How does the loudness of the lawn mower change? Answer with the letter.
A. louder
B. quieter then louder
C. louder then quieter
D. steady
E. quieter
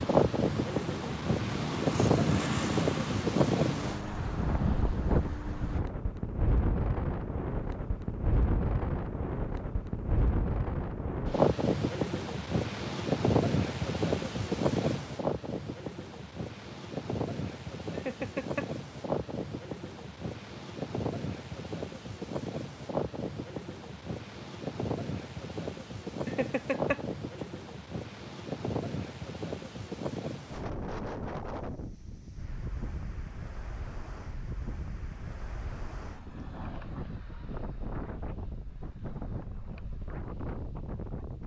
C.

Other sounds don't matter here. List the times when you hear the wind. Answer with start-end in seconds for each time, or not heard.
0.0-41.4.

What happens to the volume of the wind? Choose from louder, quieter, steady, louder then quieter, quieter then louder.
quieter.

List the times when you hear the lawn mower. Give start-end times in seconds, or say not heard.
0.0-5.8.